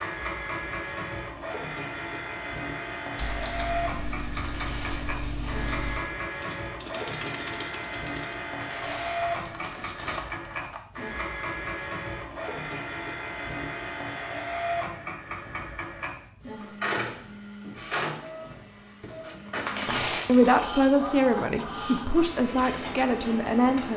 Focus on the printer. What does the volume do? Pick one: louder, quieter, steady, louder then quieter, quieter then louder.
steady.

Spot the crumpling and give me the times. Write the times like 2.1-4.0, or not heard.
4.4-6.0, 8.6-10.3, 19.6-20.6.